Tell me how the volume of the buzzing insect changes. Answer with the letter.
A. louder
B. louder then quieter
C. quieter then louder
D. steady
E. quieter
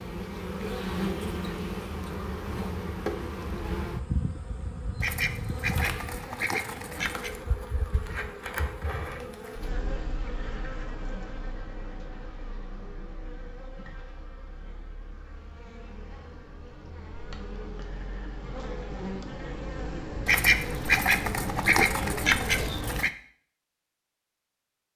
C.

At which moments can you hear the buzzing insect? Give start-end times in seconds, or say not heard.
0.0-23.1.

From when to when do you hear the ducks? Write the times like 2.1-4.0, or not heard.
5.0-7.4, 20.2-23.1.